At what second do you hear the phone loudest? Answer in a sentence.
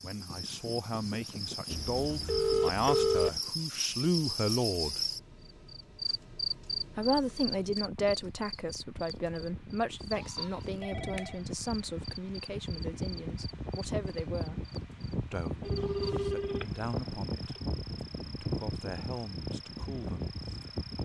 The loudest moment of the phone is at 3 seconds.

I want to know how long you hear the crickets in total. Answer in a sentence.
The crickets can be heard for 21 seconds in total.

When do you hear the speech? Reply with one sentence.
The speech can be heard from 0.0 to 5.0 s, from 7.0 to 14.7 s, from 15.3 to 17.6 s and from 18.2 to 20.8 s.